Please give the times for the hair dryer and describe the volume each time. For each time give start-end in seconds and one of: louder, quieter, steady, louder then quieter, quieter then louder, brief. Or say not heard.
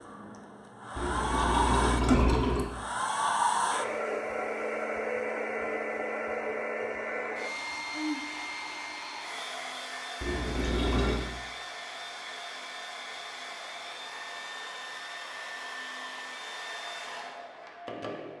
0.0-18.3 quieter.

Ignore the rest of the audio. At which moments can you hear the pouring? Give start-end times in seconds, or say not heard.
0.9-2.6, 10.2-11.2.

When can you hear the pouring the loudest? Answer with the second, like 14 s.
2 s.